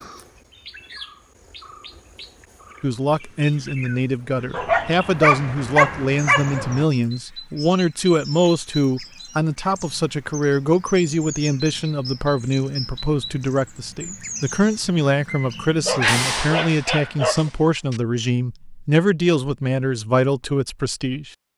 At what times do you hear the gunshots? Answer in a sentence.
The gunshots can be heard from 16.0 to 18.0 s.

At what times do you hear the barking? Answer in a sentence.
The barking can be heard from 4.5 to 6.8 s and from 15.8 to 17.5 s.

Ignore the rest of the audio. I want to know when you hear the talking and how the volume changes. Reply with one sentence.
You can hear the talking from 2.8 to 21.3 s, at a steady volume.